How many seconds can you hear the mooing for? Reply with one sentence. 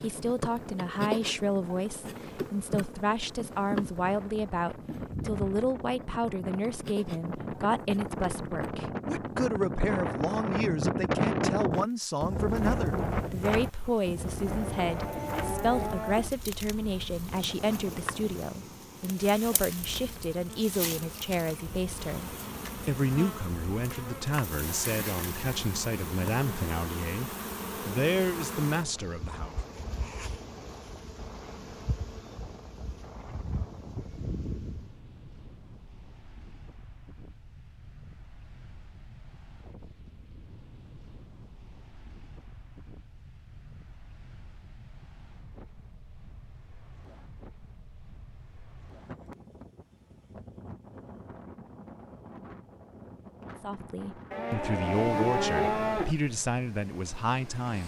You can hear the mooing for 4 seconds altogether.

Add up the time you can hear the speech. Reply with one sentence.
The speech can be heard for 34 seconds in total.